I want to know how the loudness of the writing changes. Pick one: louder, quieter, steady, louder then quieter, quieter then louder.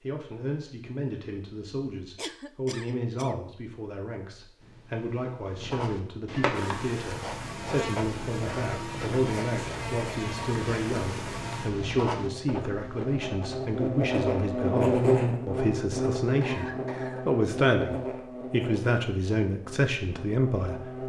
steady.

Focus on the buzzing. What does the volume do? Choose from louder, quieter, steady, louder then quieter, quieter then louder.
louder then quieter.